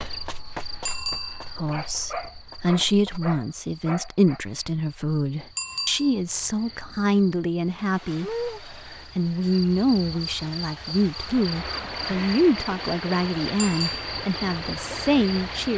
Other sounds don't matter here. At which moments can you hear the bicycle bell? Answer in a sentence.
You can hear the bicycle bell from 0.8 to 1.5 s, from 5.5 to 6.2 s and from 13.6 to 14.1 s.